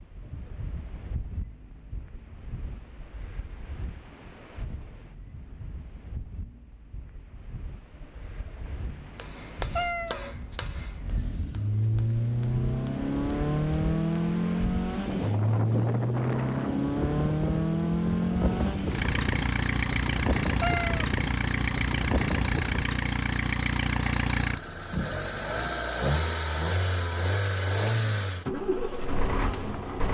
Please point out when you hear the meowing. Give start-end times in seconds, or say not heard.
9.8-10.2, 20.6-21.1.